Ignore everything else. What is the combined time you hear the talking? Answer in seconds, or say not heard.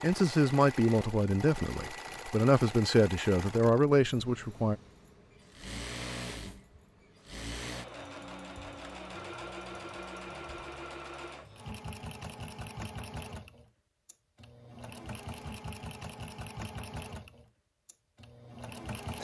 5 s.